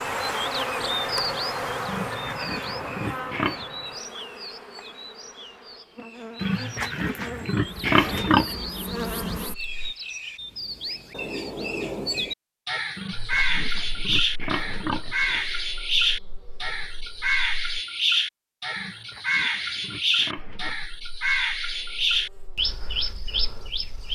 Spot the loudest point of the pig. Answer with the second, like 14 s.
8 s.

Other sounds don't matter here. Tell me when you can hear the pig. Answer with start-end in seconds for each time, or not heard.
1.9-3.6, 6.4-8.6, 12.9-15.5, 18.8-20.8.